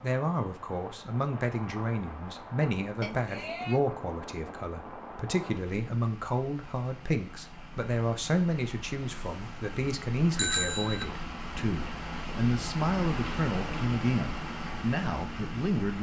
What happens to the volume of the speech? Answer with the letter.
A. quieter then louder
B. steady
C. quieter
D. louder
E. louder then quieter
B.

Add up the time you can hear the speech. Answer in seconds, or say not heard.
16 s.